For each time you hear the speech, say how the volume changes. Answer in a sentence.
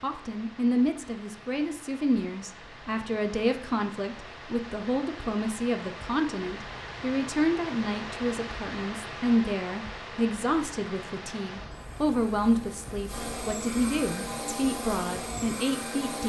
You can hear the speech from 0.0 to 16.2 s, at a steady volume.